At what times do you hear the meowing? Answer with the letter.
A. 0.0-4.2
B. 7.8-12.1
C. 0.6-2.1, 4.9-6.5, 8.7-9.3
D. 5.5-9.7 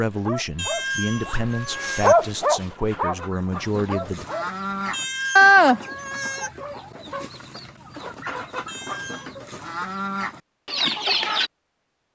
C.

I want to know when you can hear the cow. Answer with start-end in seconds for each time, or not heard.
not heard.